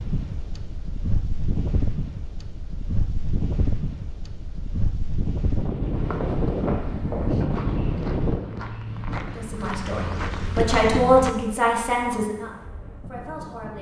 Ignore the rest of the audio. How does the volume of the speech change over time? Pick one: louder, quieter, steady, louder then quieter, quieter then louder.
louder then quieter.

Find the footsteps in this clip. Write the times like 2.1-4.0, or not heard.
5.9-11.3.